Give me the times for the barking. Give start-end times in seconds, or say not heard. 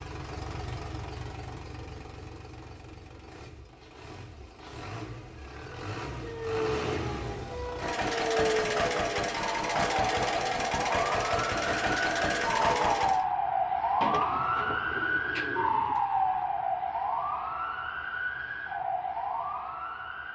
not heard.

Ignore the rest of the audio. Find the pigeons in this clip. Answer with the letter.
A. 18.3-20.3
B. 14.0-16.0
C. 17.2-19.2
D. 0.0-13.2
B.